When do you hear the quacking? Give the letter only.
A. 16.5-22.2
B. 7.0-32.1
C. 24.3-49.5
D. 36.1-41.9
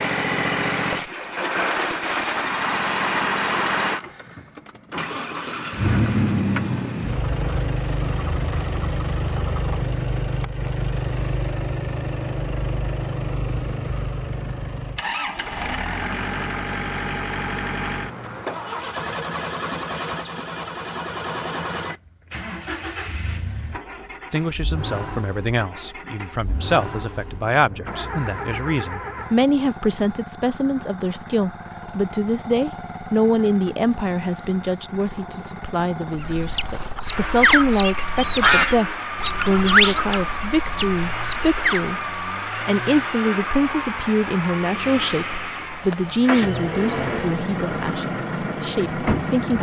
D.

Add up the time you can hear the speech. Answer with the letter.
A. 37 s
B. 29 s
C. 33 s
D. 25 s
D.